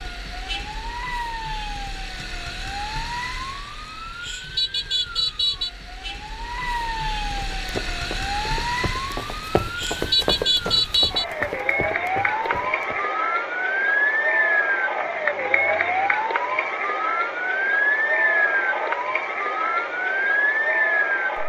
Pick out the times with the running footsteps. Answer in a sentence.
The running footsteps can be heard from 7.3 to 13.1 s.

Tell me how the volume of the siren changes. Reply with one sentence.
The volume of the siren goes up.